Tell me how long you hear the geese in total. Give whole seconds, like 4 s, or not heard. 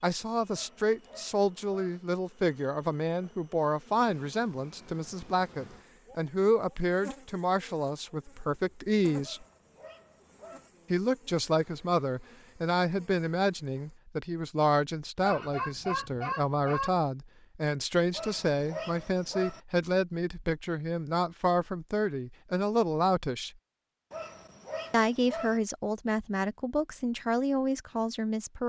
2 s.